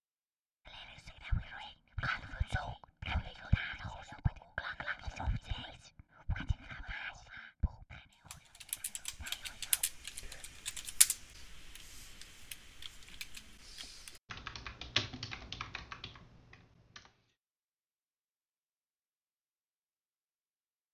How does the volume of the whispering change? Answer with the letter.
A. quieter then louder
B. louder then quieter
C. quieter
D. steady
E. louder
C.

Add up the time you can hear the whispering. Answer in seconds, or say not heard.
10 s.